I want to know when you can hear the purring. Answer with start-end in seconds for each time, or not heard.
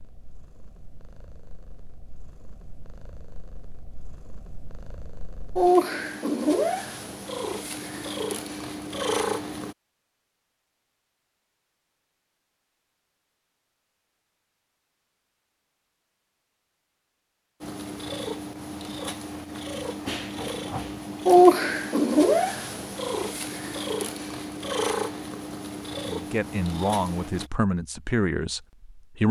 0.0-9.8, 17.6-27.4.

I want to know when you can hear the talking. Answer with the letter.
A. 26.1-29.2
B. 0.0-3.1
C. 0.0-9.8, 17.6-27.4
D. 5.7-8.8
A.